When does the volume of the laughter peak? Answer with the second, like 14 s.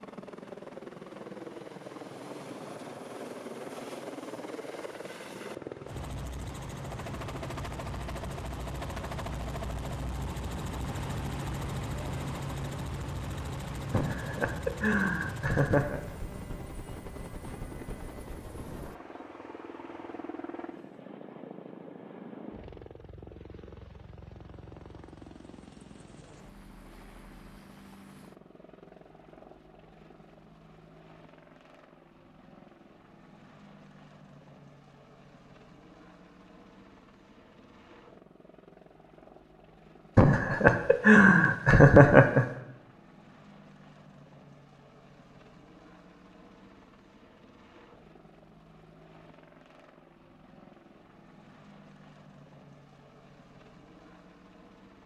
42 s.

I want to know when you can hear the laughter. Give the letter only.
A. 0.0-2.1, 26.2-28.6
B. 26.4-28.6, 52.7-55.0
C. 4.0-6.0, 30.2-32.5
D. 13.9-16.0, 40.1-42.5
D.